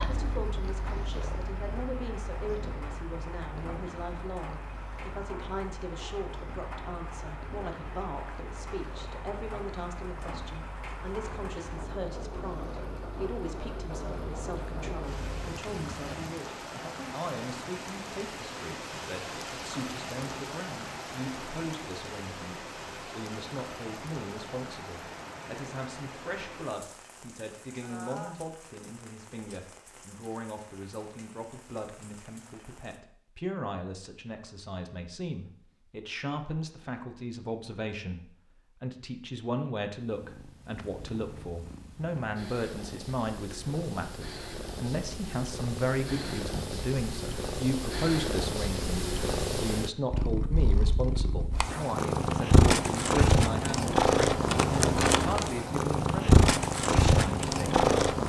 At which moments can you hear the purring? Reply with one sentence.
The purring can be heard from 0.0 to 16.4 s and from 40.0 to 58.2 s.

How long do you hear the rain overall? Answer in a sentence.
You can hear the rain for 33 seconds altogether.